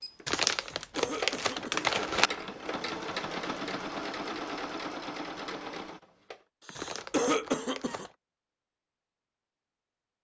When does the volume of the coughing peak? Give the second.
7 s.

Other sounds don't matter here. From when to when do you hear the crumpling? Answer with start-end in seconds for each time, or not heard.
0.2-2.3, 6.8-8.2.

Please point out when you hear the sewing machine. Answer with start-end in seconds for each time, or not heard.
0.0-6.5.